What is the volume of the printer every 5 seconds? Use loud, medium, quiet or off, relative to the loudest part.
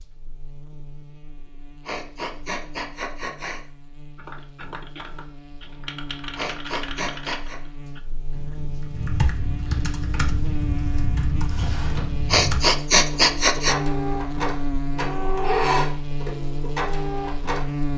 off, off, medium, loud.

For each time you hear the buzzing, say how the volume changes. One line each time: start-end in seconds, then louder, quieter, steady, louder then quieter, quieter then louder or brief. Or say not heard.
0.0-17.9 louder.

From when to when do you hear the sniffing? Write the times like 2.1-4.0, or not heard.
1.9-3.6, 6.3-7.6, 12.3-13.8.